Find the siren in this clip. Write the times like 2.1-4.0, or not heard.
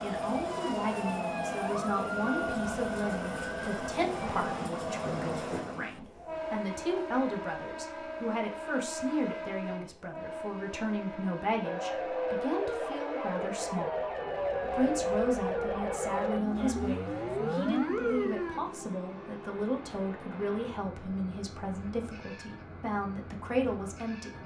0.1-4.5, 11.6-18.6.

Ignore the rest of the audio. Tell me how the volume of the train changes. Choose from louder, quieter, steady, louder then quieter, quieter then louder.
quieter.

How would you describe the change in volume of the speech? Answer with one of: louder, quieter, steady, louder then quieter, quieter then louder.
steady.